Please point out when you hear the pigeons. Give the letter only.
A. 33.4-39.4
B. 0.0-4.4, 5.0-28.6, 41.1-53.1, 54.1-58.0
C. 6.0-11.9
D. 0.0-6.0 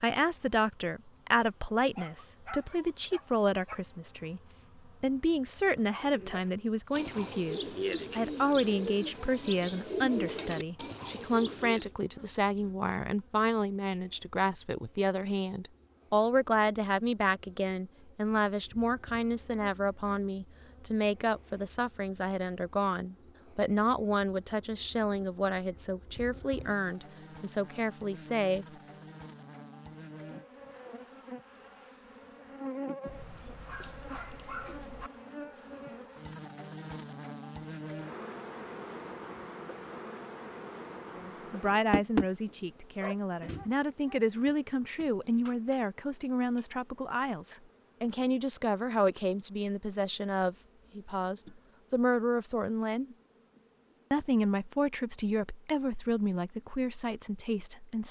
C.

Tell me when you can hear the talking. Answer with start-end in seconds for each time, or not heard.
0.0-4.4, 5.0-28.6, 41.1-53.1, 54.1-58.0.